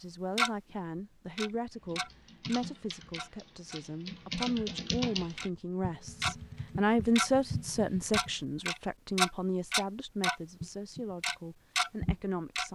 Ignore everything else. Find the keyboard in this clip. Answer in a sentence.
The keyboard can be heard from 1.8 to 8.4 s.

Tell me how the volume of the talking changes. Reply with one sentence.
The volume of the talking goes up, then down.